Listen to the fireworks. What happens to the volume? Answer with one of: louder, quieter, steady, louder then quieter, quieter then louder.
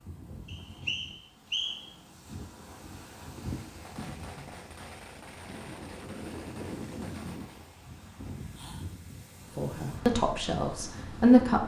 steady.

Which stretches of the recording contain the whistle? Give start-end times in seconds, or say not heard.
0.5-1.9.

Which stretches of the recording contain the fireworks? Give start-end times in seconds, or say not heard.
3.6-7.8.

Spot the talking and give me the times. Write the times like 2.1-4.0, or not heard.
9.6-11.6.